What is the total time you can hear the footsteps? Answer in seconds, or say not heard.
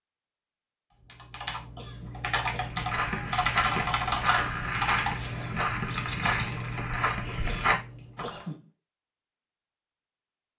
6 s.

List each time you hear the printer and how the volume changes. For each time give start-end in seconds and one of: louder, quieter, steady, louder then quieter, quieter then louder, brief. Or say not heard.
not heard.